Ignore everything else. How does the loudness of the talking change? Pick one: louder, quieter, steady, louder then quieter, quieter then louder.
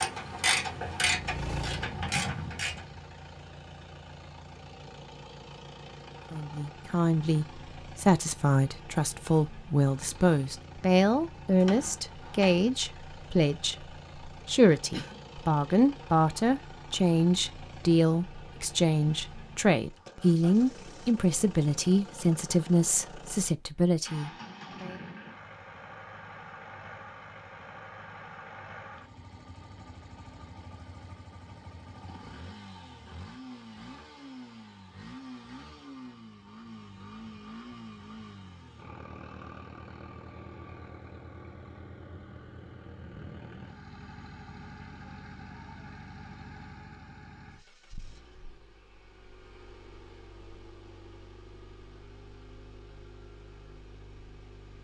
steady.